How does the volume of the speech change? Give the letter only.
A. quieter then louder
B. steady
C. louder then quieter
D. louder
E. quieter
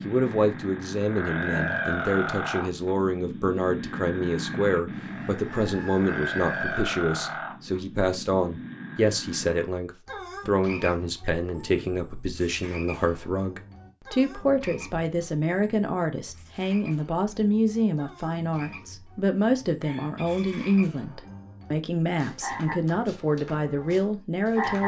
B.